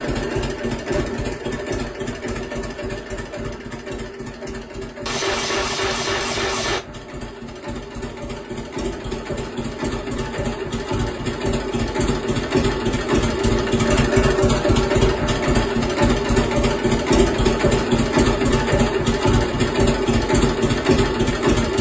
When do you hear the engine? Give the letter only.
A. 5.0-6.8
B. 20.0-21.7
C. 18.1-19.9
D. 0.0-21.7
D.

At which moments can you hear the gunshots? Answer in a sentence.
The gunshots can be heard from 5.0 to 6.8 s.